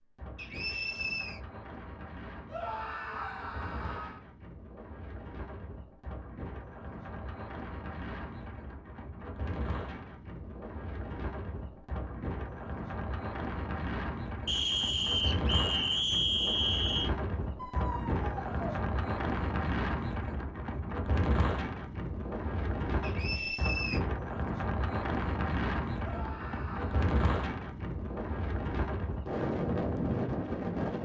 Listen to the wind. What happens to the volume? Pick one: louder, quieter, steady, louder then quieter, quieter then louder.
louder.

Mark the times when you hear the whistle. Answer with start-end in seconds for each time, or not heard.
0.3-1.4, 14.4-17.1, 23.0-24.0.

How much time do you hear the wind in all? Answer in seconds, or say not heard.
31 s.